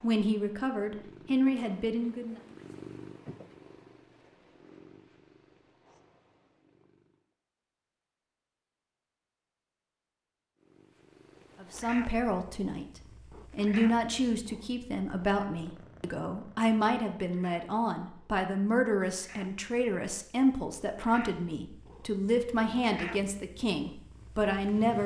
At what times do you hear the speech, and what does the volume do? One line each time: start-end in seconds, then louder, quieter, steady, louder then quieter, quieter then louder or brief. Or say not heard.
0.0-2.4 brief
11.6-12.8 brief
13.6-25.0 steady.